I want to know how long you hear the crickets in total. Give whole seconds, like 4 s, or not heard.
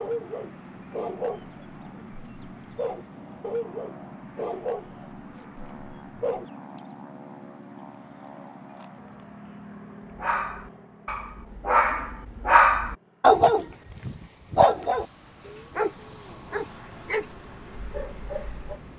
not heard.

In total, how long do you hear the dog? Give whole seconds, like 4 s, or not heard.
15 s.